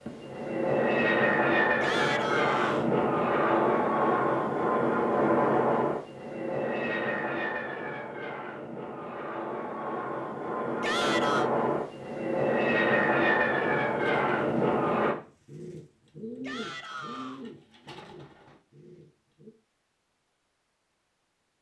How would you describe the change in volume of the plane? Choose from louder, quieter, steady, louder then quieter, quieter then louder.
quieter then louder.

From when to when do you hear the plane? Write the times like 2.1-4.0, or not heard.
0.0-15.2.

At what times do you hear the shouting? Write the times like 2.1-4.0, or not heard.
1.8-2.9, 10.8-11.5, 16.4-17.4.